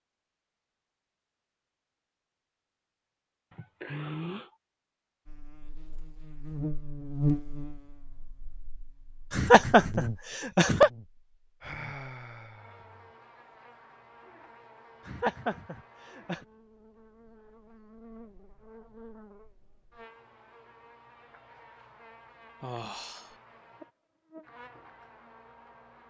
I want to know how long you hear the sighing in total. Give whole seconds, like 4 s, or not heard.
3 s.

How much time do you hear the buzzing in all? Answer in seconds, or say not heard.
21 s.